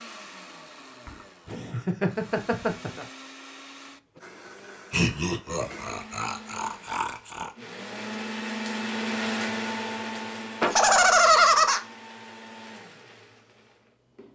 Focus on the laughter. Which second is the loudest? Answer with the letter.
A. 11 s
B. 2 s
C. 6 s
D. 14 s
A.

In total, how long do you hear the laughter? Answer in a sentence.
The laughter can be heard for 6 seconds in total.